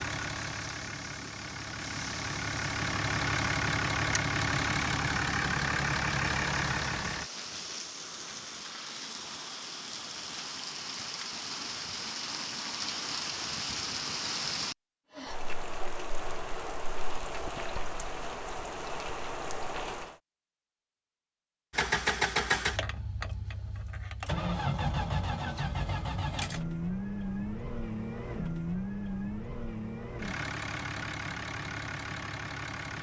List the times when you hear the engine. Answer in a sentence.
You can hear the engine from 0.0 to 7.3 s and from 21.7 to 32.9 s.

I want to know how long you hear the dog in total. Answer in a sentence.
The dog can't be heard in this clip.